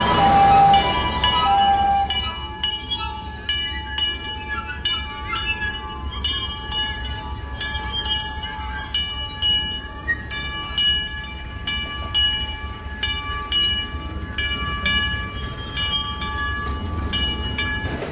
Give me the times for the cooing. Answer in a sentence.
You can't hear the cooing here.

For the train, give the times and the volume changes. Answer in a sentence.
The train can be heard from 0.0 to 18.0 s, at a steady volume.